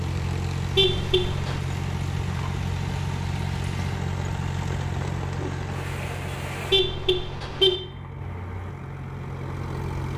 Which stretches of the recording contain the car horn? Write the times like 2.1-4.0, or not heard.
0.8-1.6, 6.7-7.8.